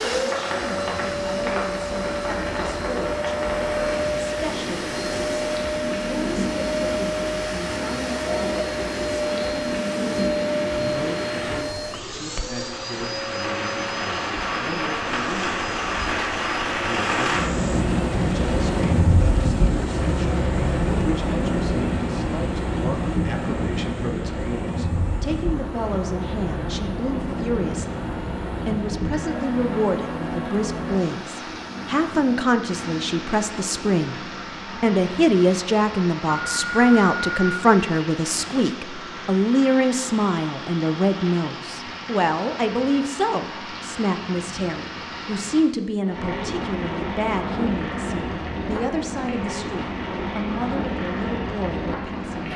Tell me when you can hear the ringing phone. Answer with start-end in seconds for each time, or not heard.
36.3-37.6.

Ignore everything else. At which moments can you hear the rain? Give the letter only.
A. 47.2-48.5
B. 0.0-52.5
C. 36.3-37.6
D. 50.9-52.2
B.